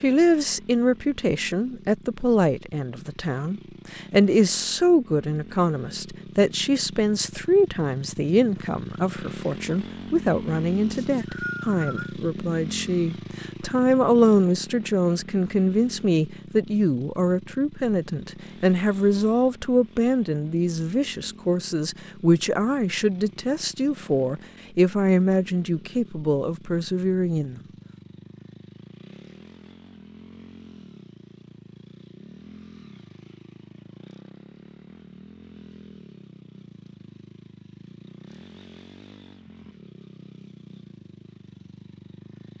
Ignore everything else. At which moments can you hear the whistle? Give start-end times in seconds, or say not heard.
10.9-12.2.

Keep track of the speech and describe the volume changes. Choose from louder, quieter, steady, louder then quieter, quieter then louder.
steady.